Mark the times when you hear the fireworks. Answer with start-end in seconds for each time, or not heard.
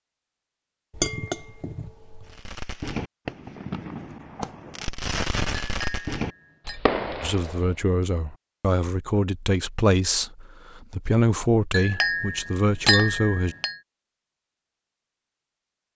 2.2-7.8.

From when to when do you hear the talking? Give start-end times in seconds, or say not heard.
7.2-13.6.